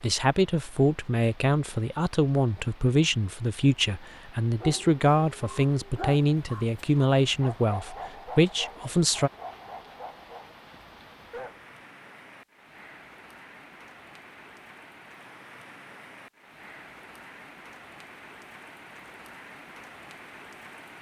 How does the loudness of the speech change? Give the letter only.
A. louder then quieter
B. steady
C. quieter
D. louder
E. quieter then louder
B.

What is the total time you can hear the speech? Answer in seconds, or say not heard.
9 s.